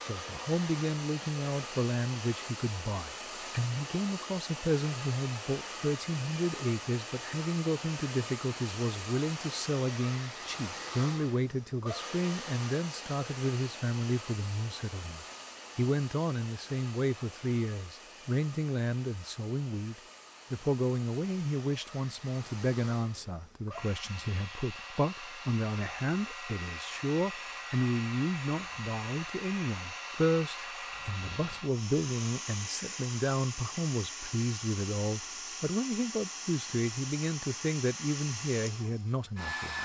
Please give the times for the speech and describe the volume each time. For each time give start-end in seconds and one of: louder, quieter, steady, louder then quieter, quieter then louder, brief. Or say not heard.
0.0-39.8 steady.